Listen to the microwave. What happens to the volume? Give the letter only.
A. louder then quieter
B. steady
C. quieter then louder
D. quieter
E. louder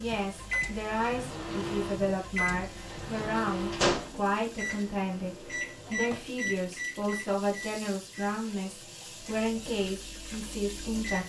D.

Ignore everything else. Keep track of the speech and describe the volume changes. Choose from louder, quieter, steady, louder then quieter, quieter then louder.
steady.